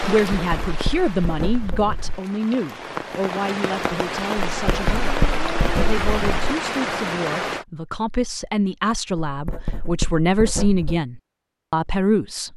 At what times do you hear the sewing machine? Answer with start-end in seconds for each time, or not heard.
not heard.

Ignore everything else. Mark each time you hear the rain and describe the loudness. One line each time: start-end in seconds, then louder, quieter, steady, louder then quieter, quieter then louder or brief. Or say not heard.
0.0-7.7 louder.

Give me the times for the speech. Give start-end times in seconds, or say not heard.
0.1-5.2, 5.8-12.5.